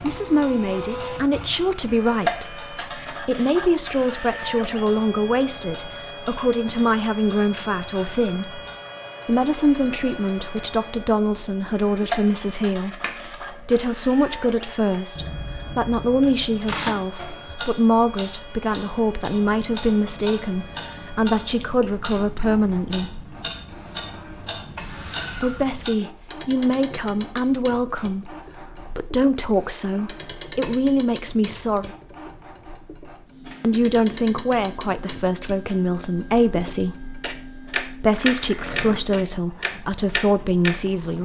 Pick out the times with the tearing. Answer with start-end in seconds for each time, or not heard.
16.6-17.1, 38.1-39.0.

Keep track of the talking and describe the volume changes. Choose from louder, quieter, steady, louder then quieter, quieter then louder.
steady.